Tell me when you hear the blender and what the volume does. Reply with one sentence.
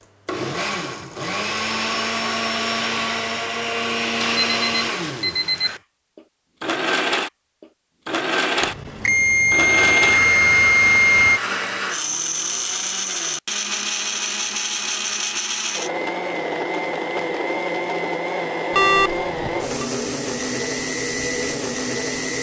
You can hear the blender from 0.2 to 22.3 s, at a steady volume.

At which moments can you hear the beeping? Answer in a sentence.
You can hear the beeping from 4.2 to 5.8 s, from 8.6 to 11.4 s and from 18.7 to 19.9 s.